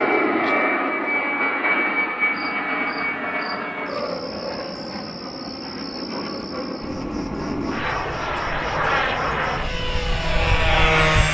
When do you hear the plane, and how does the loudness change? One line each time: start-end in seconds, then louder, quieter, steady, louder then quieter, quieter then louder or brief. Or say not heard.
0.0-11.2 quieter then louder.